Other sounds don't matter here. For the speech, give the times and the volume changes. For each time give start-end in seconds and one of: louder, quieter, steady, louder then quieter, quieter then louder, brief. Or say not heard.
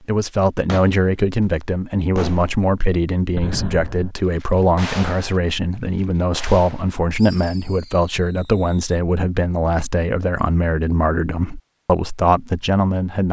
0.1-13.2 steady.